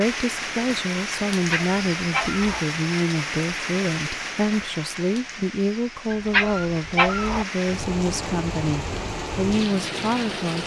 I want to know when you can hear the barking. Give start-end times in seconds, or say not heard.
1.3-2.6, 6.1-7.5.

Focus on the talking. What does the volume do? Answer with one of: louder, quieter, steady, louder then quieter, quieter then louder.
steady.